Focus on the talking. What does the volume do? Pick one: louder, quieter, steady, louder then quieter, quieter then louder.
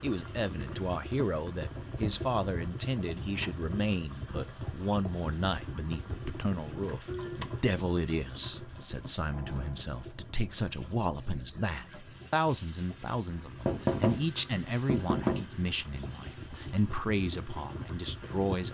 steady.